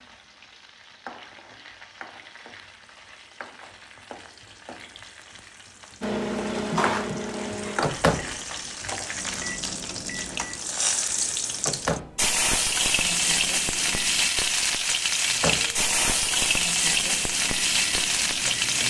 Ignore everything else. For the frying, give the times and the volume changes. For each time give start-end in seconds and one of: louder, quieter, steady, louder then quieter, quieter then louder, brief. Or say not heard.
0.0-18.8 louder.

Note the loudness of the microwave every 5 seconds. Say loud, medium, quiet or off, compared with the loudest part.
off, loud, medium, medium.